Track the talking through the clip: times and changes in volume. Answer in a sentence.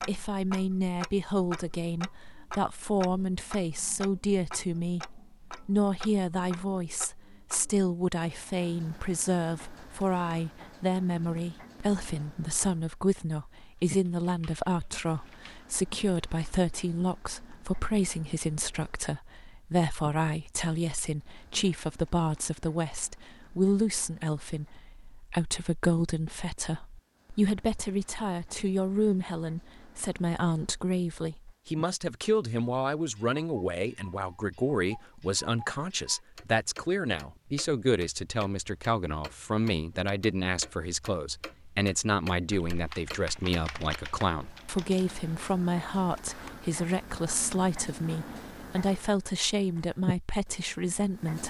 The talking can be heard from 0.1 to 51.4 s, at a steady volume.